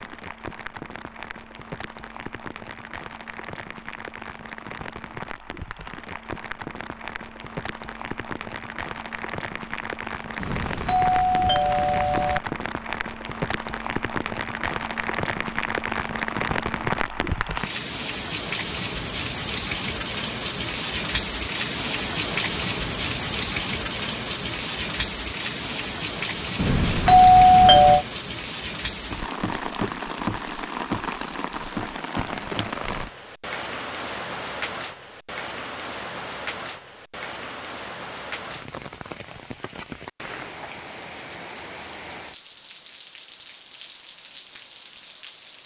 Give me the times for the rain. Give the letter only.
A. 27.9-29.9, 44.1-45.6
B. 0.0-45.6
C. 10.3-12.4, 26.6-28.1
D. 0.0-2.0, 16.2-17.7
B.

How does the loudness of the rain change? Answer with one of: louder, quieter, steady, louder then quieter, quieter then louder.
louder then quieter.